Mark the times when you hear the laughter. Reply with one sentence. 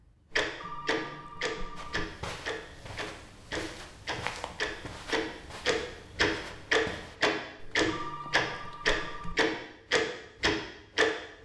You can't hear the laughter here.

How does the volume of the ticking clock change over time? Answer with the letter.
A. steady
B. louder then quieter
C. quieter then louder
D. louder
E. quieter
D.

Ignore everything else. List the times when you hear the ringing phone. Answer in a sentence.
The ringing phone can be heard from 0.4 to 2.0 s and from 7.6 to 9.3 s.